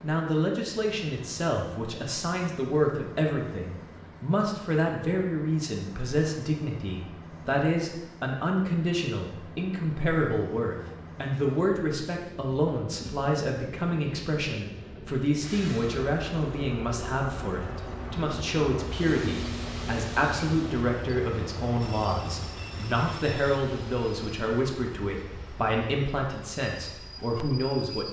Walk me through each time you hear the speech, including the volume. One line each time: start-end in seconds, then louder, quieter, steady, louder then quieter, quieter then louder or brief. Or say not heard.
0.0-28.0 steady.